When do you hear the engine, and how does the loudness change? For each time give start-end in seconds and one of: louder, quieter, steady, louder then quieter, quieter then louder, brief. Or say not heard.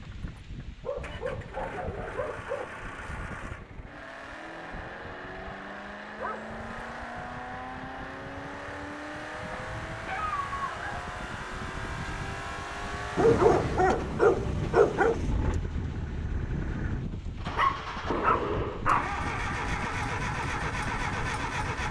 0.0-21.8 louder.